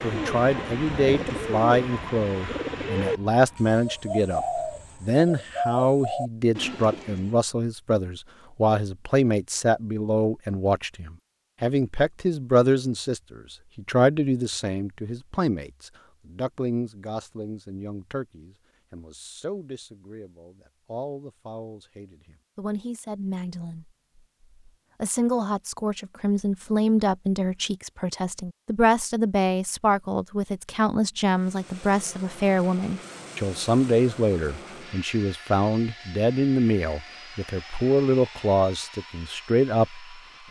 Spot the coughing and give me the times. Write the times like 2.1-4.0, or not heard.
not heard.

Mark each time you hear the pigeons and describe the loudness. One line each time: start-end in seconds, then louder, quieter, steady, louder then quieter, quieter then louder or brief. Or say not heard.
0.0-7.3 steady.